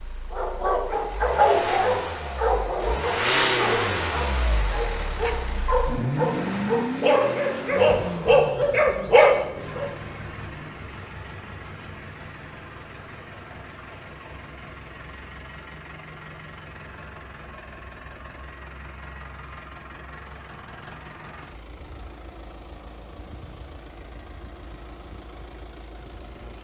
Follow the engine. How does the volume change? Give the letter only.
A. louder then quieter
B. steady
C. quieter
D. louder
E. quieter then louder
C.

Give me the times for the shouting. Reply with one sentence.
You can't hear the shouting here.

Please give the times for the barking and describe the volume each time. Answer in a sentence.
You can hear the barking from 0.3 to 9.8 s, getting quieter then louder.